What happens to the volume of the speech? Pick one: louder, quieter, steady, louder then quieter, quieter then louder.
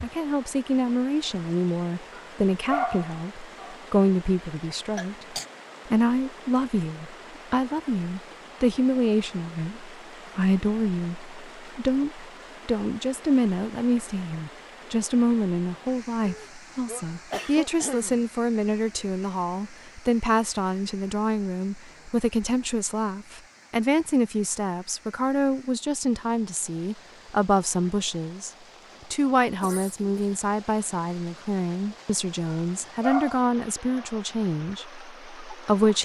steady.